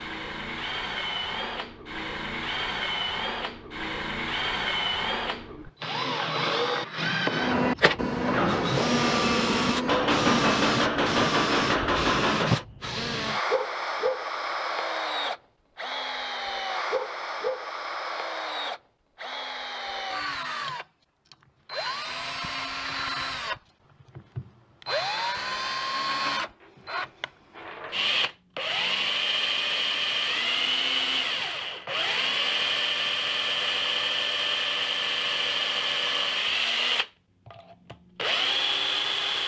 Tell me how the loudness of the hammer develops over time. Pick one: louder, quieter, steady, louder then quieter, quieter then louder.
steady.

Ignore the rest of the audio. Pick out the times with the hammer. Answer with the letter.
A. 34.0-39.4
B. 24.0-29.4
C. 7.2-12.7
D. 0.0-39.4
C.